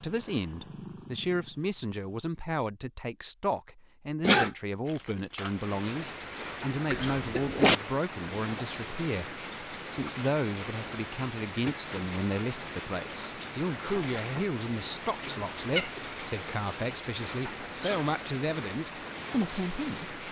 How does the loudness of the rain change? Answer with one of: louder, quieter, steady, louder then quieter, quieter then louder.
steady.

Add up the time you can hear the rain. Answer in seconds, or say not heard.
15 s.